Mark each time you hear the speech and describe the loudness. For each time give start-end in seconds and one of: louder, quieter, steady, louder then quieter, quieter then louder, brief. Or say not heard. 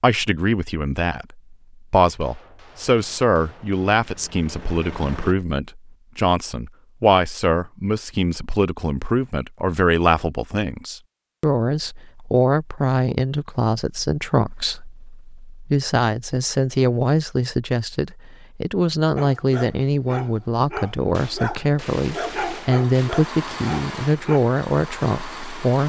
0.0-25.8 steady.